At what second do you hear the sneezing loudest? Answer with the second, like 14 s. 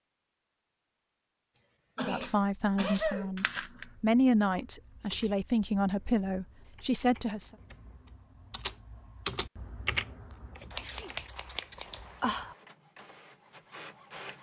3 s.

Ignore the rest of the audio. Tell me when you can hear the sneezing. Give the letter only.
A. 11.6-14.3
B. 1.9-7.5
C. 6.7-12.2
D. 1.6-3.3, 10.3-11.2
D.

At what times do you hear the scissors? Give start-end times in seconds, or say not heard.
3.4-3.9, 10.7-12.6.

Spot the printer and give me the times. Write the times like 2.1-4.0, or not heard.
11.6-14.3.